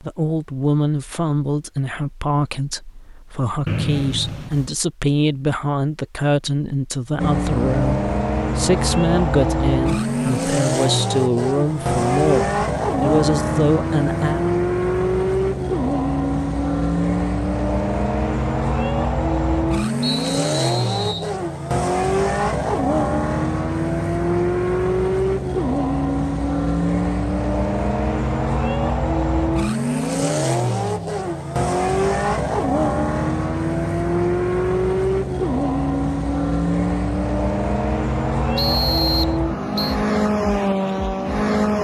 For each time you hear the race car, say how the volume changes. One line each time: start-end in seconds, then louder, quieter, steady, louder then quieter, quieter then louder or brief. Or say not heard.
7.2-41.7 steady.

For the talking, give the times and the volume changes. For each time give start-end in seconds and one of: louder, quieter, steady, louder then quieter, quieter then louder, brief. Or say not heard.
0.0-14.4 steady.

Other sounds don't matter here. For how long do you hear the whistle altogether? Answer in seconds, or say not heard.
4 s.